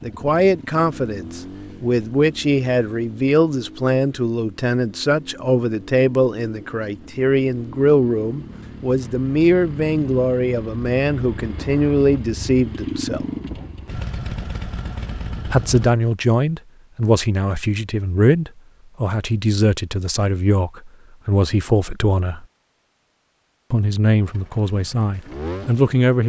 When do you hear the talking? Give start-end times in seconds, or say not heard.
0.0-13.2, 15.5-22.4, 23.7-26.2.